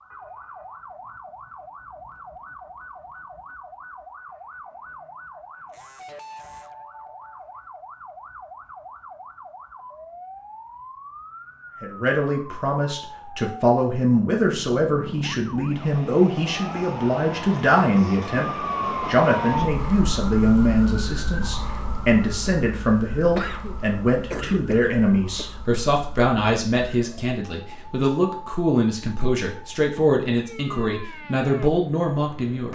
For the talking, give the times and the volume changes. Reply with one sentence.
You can hear the talking from 11.8 to 32.7 s, at a steady volume.